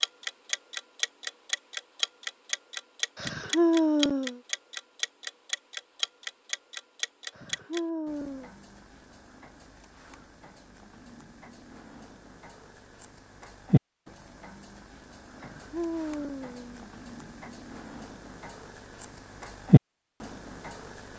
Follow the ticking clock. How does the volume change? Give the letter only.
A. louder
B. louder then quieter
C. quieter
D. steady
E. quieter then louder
E.